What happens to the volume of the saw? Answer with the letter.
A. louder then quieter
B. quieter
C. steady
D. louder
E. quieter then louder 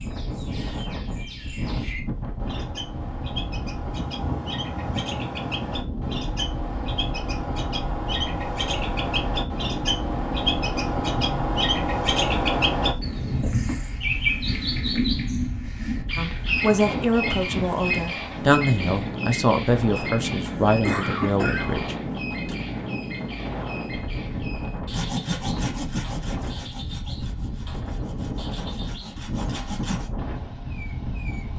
E.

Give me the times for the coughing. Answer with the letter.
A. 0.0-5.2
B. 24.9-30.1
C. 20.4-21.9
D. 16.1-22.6
C.